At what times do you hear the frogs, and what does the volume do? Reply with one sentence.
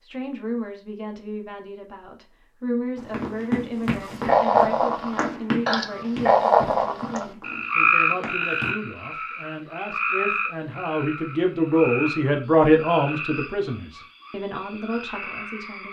The frogs can be heard from 4.0 to 15.8 s, getting quieter.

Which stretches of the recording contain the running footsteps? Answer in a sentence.
The running footsteps can be heard from 3.0 to 8.8 s.